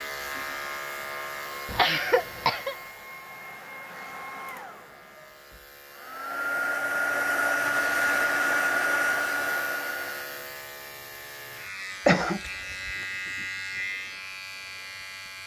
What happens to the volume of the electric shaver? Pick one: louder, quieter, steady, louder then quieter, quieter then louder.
quieter then louder.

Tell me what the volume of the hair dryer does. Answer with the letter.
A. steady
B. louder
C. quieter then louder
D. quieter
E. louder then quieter
B.